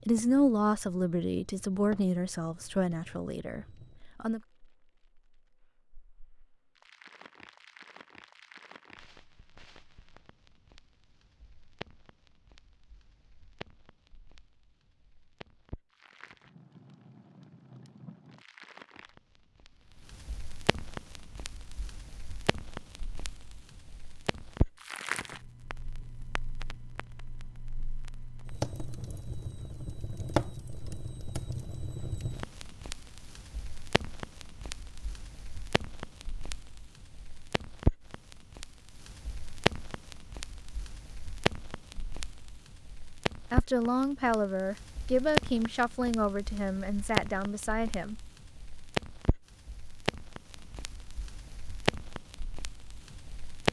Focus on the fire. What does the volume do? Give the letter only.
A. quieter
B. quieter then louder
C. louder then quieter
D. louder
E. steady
D.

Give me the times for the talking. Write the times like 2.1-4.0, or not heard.
0.1-4.4, 43.5-48.1.